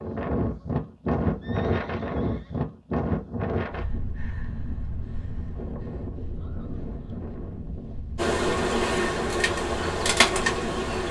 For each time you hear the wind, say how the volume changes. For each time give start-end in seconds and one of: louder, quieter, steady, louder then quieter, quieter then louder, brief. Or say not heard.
0.0-11.0 quieter.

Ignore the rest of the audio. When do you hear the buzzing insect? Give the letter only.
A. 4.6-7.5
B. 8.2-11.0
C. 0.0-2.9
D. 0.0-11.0
B.